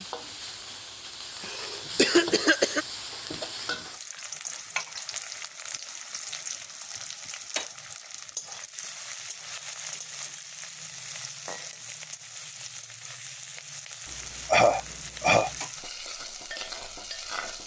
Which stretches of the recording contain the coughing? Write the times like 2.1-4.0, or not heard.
1.4-2.9, 14.1-15.5.